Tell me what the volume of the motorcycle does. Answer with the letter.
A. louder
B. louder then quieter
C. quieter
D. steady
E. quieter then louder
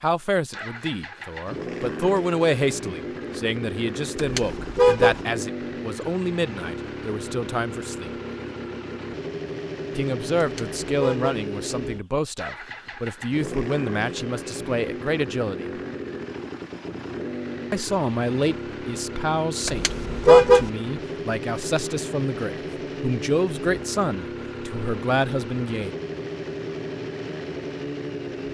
D.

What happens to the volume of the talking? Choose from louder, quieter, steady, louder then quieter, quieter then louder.
steady.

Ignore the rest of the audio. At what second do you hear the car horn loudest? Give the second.
20 s.